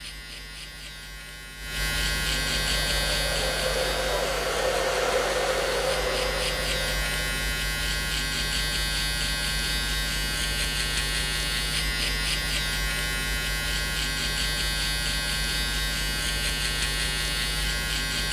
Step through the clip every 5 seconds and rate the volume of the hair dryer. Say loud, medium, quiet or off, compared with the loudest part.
loud, loud, off, off.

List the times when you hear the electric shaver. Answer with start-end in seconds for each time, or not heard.
0.0-18.2.